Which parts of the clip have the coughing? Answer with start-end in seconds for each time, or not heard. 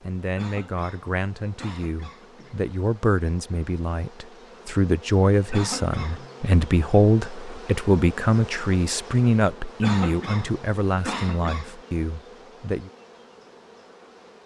0.3-2.7, 5.5-6.5, 9.8-11.7.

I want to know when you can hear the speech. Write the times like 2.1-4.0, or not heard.
0.0-12.9.